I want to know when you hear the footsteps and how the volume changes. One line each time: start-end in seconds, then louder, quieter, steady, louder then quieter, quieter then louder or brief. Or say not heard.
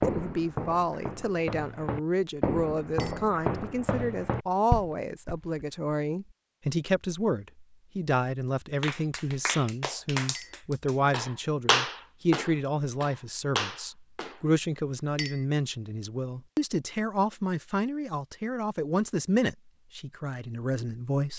0.0-5.7 louder.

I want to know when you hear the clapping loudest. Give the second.
12 s.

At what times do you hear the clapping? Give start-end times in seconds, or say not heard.
8.8-14.4.